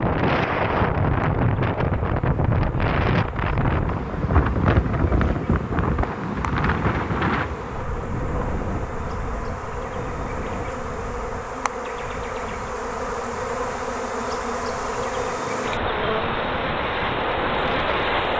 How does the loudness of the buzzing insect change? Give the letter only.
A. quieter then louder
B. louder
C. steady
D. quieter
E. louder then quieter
B.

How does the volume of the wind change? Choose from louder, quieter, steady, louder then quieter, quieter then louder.
quieter then louder.